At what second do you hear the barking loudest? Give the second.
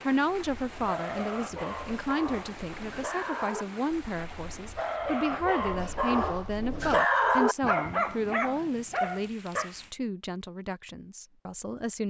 7 s.